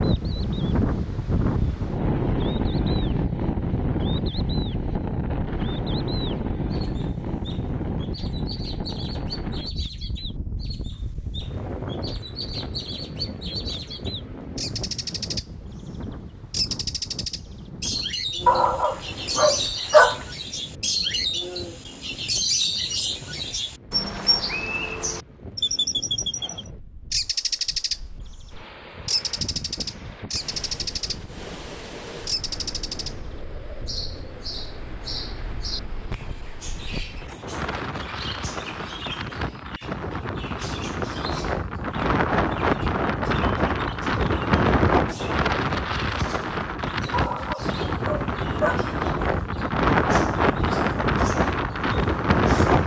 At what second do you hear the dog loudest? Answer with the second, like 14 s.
20 s.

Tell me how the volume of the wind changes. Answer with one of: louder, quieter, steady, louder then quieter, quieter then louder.
quieter then louder.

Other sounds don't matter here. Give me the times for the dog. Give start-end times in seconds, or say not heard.
18.4-20.2, 47.1-48.9.